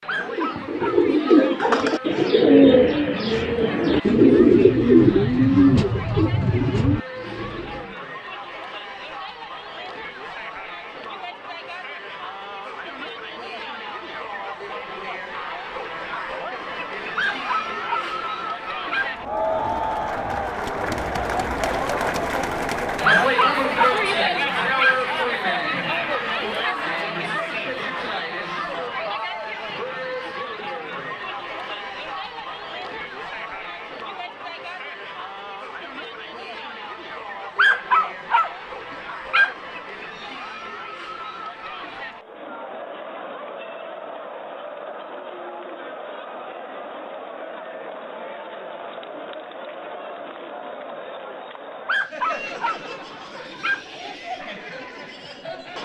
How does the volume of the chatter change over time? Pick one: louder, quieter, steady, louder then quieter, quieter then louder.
louder then quieter.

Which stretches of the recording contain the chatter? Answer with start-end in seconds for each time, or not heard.
0.0-55.8.